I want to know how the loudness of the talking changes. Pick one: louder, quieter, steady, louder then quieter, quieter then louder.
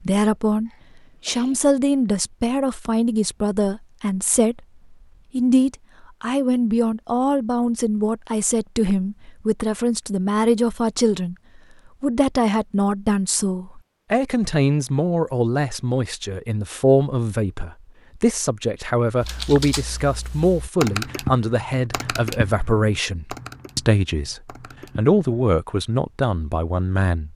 steady.